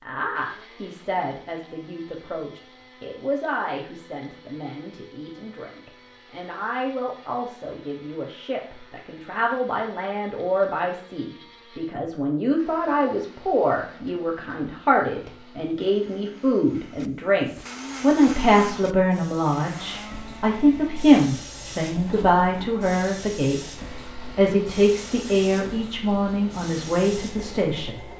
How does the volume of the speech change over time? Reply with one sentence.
The volume of the speech goes up.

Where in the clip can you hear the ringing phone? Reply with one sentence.
You can't hear the ringing phone here.